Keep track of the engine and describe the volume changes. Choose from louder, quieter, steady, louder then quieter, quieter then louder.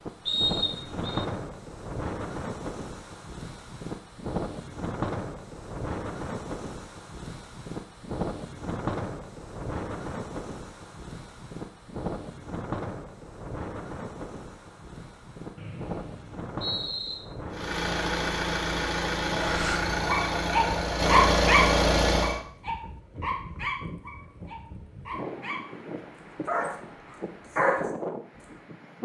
louder.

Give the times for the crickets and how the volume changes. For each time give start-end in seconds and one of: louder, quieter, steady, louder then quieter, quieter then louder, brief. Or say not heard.
not heard.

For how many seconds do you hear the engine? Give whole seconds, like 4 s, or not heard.
5 s.